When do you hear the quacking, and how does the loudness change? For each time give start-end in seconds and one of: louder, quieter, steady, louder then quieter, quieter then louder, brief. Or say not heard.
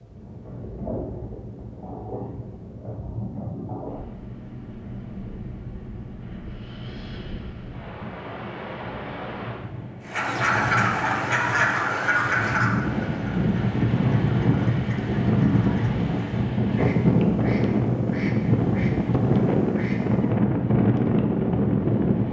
10.1-20.4 quieter.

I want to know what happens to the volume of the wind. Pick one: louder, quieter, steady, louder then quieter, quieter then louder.
louder.